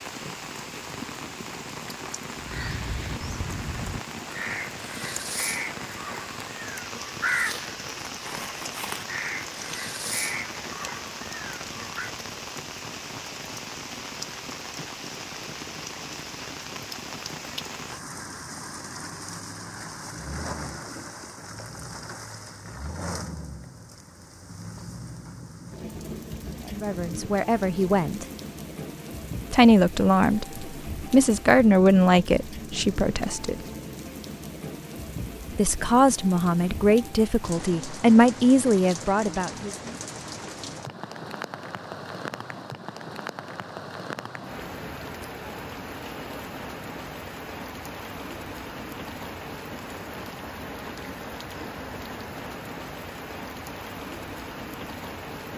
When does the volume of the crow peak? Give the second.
7 s.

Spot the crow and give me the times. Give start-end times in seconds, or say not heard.
2.4-12.1.